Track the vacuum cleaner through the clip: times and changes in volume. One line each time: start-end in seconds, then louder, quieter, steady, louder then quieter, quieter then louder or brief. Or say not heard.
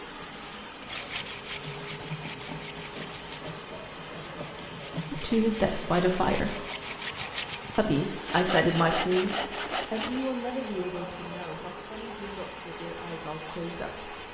0.0-14.2 steady.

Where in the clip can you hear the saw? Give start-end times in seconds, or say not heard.
0.8-10.2.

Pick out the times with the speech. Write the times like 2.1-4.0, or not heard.
5.1-6.5, 7.8-14.2.